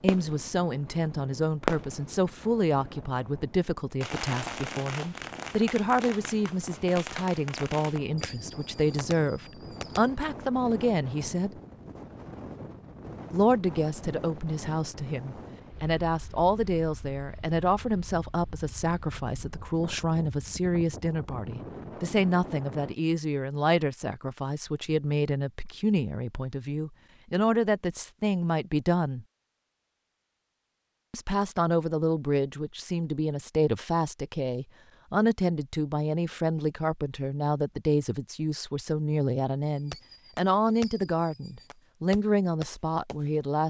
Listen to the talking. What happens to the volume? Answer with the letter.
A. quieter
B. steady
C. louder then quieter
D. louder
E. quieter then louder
B.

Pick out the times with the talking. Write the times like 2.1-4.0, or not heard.
0.0-11.6, 13.3-29.2, 31.1-43.6.